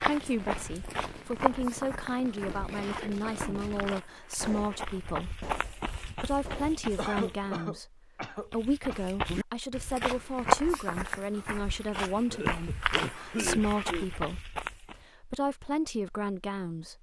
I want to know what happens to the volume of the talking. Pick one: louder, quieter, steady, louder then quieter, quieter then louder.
steady.